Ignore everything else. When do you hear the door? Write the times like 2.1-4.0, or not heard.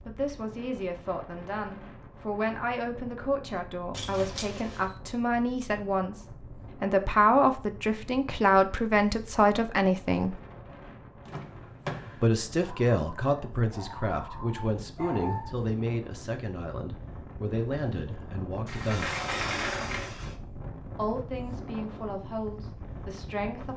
3.9-5.0, 11.2-12.2, 18.6-20.4.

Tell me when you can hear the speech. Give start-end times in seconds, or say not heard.
0.1-10.4, 12.2-19.1, 20.9-23.7.